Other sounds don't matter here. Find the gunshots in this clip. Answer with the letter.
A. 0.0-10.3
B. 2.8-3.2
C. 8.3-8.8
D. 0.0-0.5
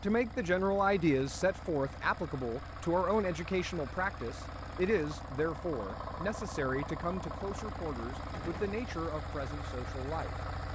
C.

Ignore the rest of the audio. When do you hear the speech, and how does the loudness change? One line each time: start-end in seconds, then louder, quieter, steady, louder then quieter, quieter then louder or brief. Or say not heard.
0.0-10.3 quieter.